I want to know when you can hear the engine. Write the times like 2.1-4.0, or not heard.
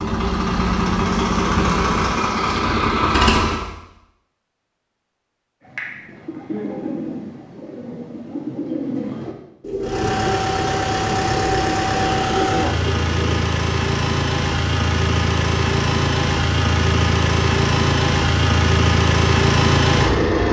0.0-3.6, 9.8-20.4.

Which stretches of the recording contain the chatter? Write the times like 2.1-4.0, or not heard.
not heard.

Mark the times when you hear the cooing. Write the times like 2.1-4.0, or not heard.
5.6-13.4.